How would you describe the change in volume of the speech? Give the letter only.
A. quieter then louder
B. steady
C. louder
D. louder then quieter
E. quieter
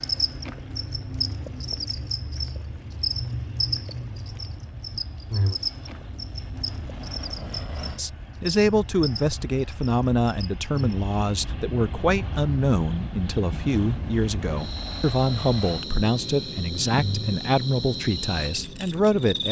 B.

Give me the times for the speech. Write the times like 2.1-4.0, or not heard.
8.0-19.4.